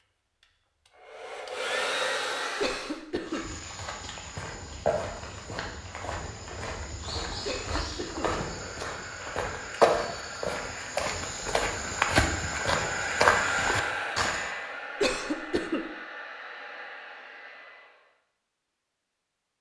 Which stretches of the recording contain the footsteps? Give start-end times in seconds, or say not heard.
3.2-14.5.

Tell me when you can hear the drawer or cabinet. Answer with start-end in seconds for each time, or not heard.
not heard.